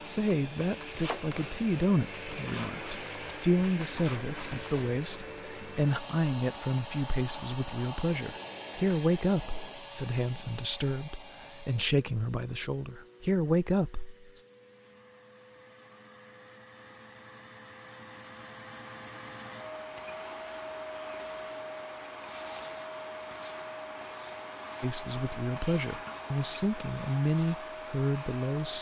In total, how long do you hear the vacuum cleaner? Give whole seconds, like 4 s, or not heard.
29 s.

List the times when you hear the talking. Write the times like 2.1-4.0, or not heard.
0.0-14.4, 24.8-28.7.